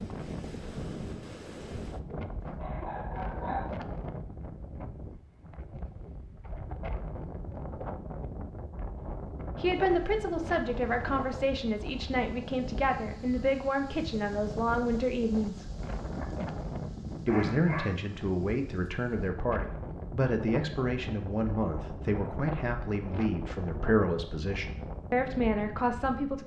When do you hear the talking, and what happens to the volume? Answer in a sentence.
The talking can be heard from 9.6 to 15.7 s, at a steady volume; and from 17.2 to 26.4 s, at a steady volume.